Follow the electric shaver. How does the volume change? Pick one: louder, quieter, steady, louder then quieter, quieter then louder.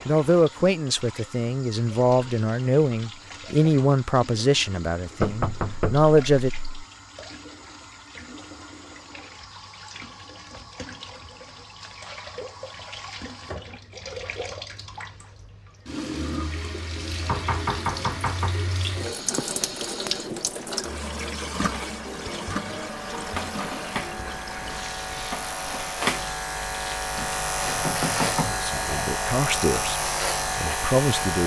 louder.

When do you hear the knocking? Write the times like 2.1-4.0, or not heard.
5.2-6.8, 17.2-18.6, 27.1-28.6.